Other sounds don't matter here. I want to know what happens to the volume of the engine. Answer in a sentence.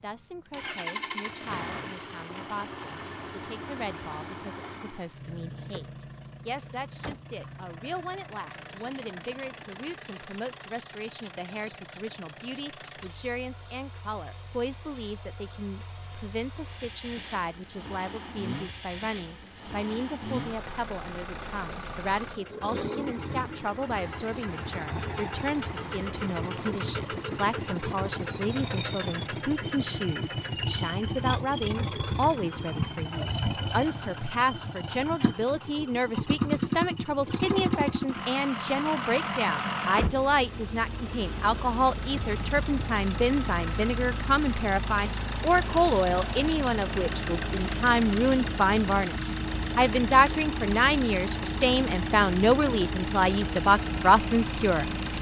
The loudness of the engine goes up.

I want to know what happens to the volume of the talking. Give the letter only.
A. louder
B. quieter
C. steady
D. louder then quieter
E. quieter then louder
A.